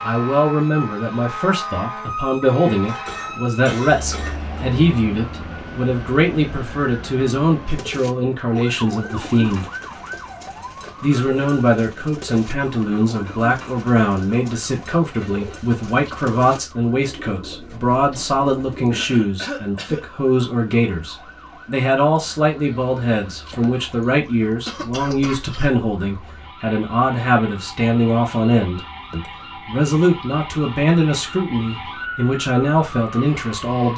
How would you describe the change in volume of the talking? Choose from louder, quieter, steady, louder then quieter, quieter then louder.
steady.